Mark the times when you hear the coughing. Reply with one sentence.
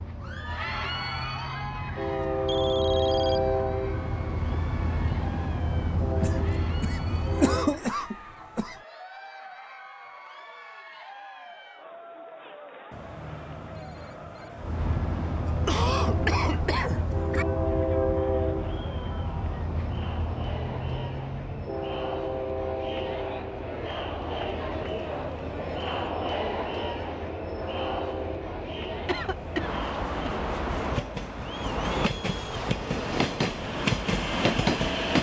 You can hear the coughing from 6.2 to 8.8 s, from 15.4 to 17.4 s and from 29.1 to 30.4 s.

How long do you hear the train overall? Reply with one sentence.
The train can be heard for 28 seconds in total.